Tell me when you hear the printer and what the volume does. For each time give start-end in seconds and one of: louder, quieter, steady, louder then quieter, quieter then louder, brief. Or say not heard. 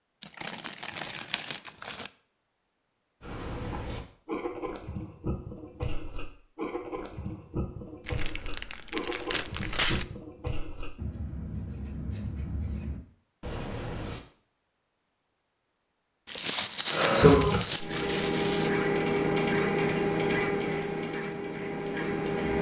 16.9-22.5 quieter.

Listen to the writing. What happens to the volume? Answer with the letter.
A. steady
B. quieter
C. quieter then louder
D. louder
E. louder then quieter
A.